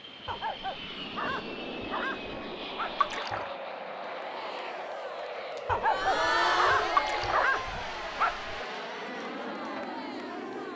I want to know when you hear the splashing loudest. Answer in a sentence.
The loudest moment of the splashing is at 7 seconds.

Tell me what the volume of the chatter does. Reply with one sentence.
The volume of the chatter goes up, then down.